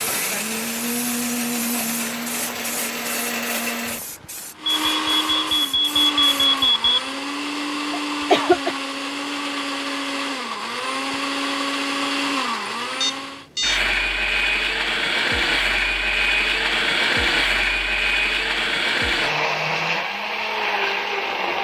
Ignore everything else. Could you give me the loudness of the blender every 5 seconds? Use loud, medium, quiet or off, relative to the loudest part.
medium, medium, loud, loud, loud.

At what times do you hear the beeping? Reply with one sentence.
The beeping can be heard from 4.8 to 7.1 s and from 13.0 to 13.8 s.